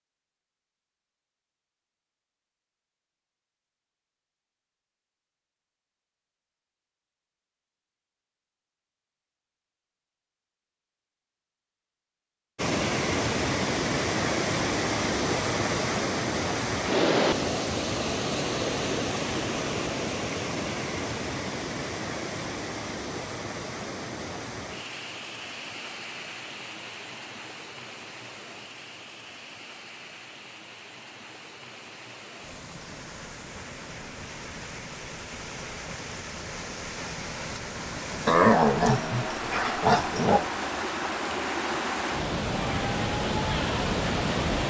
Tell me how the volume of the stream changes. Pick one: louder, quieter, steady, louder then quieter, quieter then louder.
quieter then louder.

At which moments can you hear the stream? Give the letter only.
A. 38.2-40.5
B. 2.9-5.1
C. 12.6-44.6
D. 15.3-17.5
C.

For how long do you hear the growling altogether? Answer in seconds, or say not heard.
2 s.